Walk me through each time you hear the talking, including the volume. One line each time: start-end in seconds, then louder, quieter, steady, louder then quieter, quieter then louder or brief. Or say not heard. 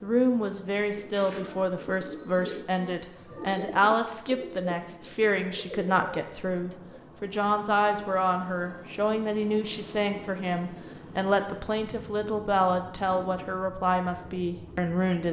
0.0-15.2 steady.